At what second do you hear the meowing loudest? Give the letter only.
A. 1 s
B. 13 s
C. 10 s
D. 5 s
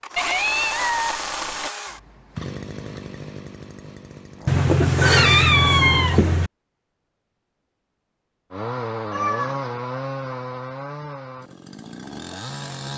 D.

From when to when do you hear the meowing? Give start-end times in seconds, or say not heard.
0.1-1.6, 4.5-6.5, 9.1-9.7.